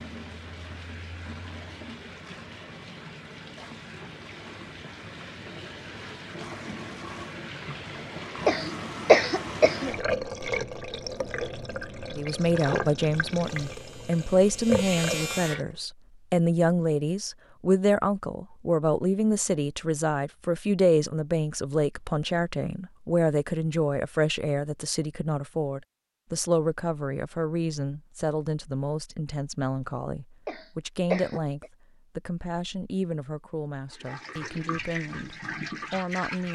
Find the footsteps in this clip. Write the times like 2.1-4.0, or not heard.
not heard.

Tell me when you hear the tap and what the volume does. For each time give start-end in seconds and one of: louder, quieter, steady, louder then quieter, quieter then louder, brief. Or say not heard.
0.0-15.8 louder
33.9-36.4 brief.